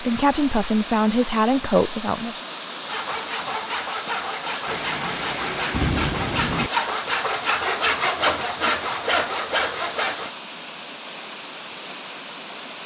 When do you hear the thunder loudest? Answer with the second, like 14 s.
6 s.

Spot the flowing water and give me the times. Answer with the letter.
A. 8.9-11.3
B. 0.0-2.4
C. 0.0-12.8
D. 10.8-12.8
C.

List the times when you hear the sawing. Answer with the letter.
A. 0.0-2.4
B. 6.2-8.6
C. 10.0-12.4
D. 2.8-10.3
D.